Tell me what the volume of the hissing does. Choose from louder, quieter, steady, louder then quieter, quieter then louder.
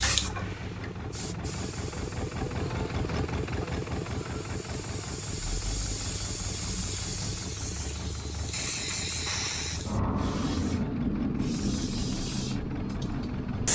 louder.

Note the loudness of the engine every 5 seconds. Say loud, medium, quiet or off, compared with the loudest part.
loud, medium, medium.